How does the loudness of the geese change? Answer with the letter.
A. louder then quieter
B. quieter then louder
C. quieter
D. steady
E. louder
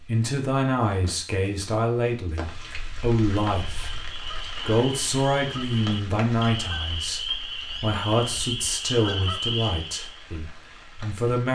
E.